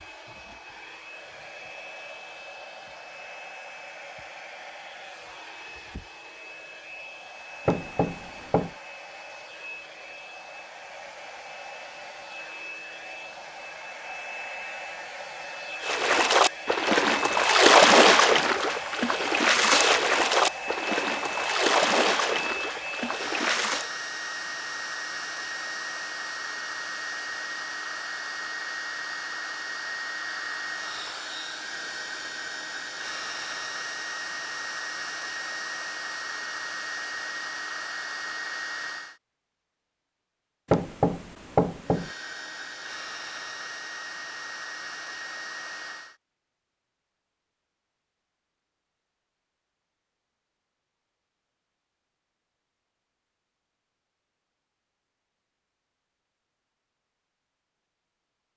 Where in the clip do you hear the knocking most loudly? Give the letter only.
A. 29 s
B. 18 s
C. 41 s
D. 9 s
C.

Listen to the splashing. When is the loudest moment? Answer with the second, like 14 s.
18 s.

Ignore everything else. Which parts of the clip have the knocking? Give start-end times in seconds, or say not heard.
7.7-8.8, 40.6-42.1.